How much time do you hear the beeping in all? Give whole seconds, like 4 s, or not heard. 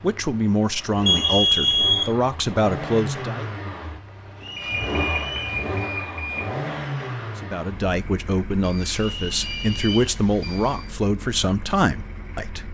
5 s.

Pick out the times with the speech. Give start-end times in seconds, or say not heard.
0.0-3.5, 7.4-12.6.